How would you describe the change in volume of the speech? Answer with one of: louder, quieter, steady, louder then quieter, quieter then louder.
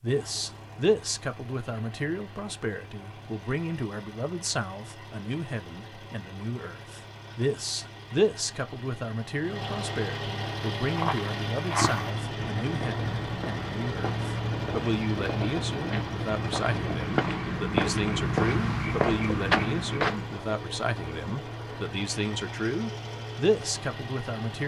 steady.